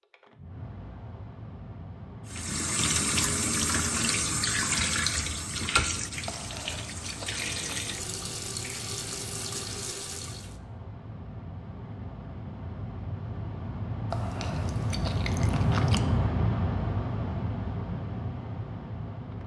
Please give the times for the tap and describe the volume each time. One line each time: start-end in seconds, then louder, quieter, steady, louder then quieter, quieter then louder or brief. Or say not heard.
2.2-10.6 quieter.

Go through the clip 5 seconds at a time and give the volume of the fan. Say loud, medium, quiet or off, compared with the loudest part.
quiet, quiet, medium, loud.